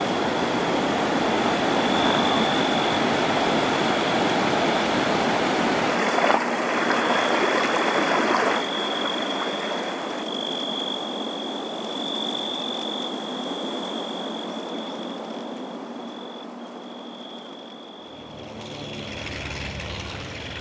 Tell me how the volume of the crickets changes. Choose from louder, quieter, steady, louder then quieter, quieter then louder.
quieter.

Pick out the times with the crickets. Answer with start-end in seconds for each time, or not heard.
0.0-20.5.